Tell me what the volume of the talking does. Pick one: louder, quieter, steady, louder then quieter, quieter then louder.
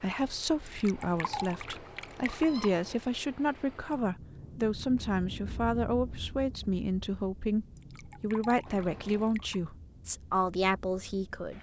steady.